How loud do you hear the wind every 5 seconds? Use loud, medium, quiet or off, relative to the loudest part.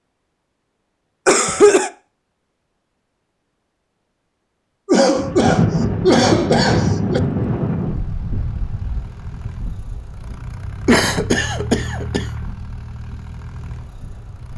off, loud, quiet.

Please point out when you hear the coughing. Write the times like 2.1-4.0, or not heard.
1.2-1.9, 4.8-7.2, 10.8-12.2.